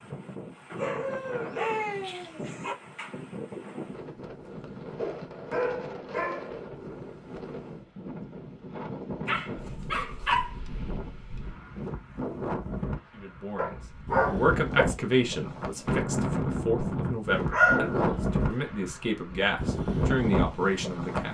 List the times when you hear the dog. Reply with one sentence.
The dog can be heard from 0.8 to 2.8 s, from 5.0 to 6.7 s, from 9.2 to 10.6 s, from 13.6 to 14.8 s and from 17.5 to 18.1 s.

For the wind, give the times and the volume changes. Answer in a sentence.
You can hear the wind from 0.0 to 21.2 s, getting louder.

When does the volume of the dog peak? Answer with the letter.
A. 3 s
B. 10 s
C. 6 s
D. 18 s
D.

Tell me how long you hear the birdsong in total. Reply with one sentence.
You can't hear the birdsong here.